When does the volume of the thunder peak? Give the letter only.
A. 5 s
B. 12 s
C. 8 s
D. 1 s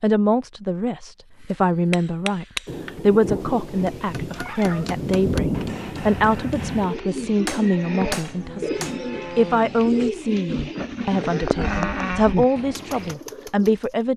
A.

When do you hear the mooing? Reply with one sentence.
You can hear the mooing from 7.8 to 13.2 s.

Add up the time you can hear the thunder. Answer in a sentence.
You can hear the thunder for 4 seconds altogether.